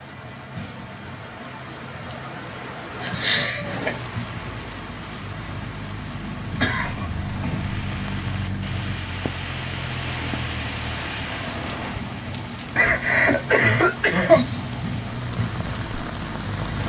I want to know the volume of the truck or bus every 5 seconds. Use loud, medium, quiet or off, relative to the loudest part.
medium, loud, loud, loud.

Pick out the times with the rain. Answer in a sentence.
You can hear the rain from 0.0 to 16.8 s.